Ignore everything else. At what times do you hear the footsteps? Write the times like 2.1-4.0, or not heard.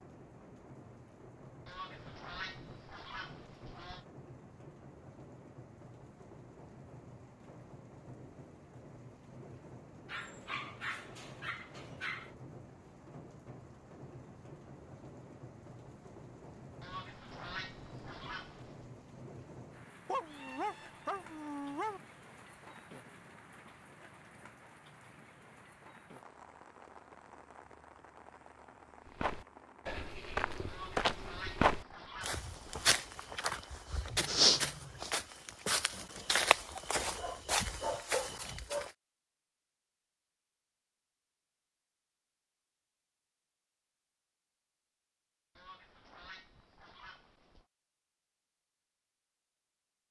29.2-38.9.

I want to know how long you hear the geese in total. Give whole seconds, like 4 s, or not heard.
9 s.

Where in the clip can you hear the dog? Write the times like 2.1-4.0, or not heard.
10.1-12.3, 20.1-22.0, 37.1-38.9.